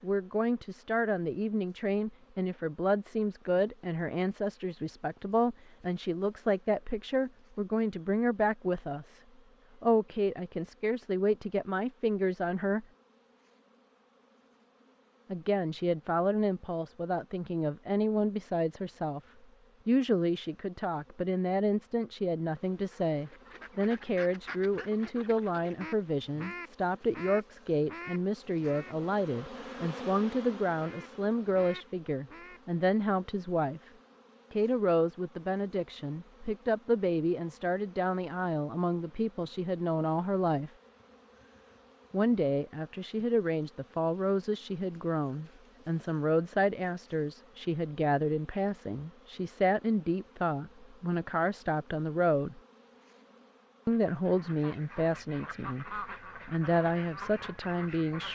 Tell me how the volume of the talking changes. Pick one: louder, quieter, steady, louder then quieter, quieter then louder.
steady.